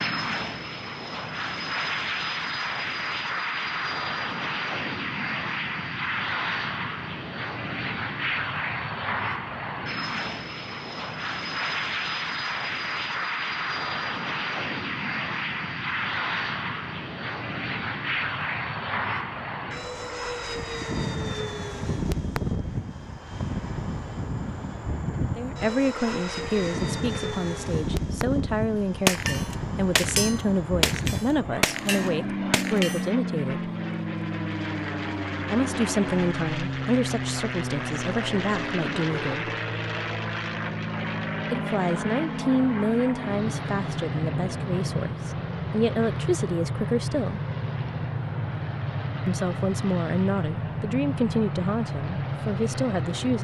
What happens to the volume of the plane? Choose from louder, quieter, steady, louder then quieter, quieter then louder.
steady.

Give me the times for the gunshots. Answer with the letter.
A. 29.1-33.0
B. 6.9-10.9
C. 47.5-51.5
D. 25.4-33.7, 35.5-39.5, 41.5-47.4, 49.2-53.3
A.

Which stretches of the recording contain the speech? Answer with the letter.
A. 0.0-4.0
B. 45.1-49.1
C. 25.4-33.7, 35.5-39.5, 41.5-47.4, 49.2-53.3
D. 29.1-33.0
C.